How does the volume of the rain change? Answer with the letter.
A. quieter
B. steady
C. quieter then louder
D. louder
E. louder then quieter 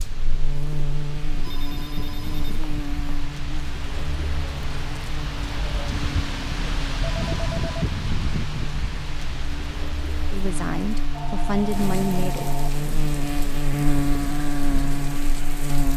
E.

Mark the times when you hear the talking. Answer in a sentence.
The talking can be heard from 10.3 to 12.5 s.